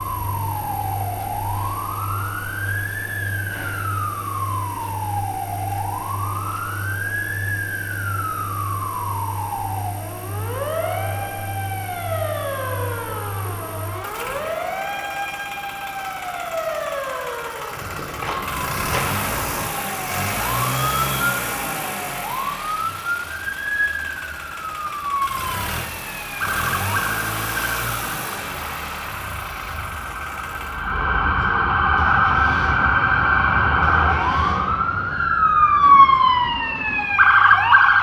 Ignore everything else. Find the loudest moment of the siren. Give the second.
36 s.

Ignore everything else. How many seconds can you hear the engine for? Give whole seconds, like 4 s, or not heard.
38 s.